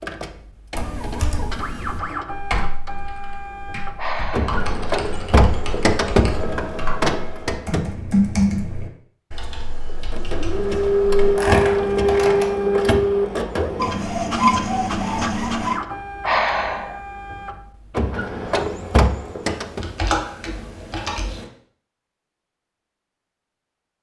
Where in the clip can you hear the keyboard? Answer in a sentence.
You can hear the keyboard from 0.8 to 12.4 s and from 19.4 to 21.4 s.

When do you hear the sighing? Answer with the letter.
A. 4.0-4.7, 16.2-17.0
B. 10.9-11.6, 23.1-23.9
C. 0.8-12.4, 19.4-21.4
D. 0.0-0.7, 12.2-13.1
A.